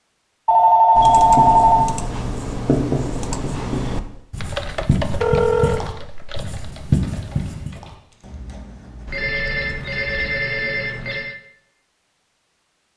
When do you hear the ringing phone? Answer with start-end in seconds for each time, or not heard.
0.5-1.9, 5.1-5.8, 9.1-11.3.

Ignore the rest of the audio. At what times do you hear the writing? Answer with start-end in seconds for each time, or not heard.
1.0-10.4.